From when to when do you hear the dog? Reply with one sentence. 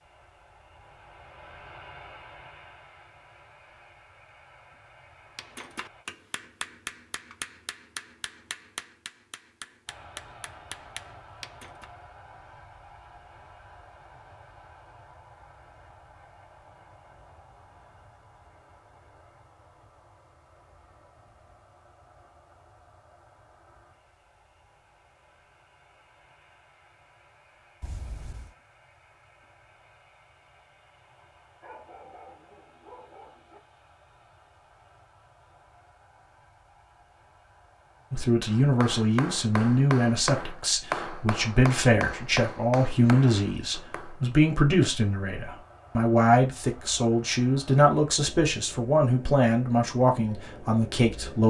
You can hear the dog from 31.6 to 33.6 s.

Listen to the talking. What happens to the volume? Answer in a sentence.
The loudness of the talking stays about the same.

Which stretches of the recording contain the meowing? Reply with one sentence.
You can hear the meowing from 27.8 to 28.6 s.